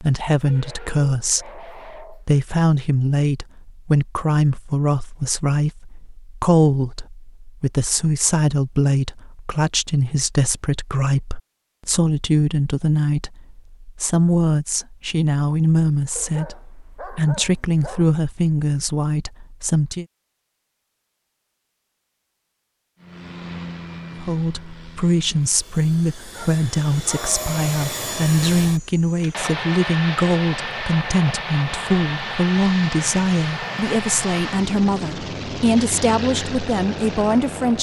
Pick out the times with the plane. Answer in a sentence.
The plane can be heard from 23.0 to 37.7 s.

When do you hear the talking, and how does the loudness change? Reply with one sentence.
You can hear the talking from 0.0 to 20.1 s, at a steady volume; and from 24.1 to 37.7 s, at a steady volume.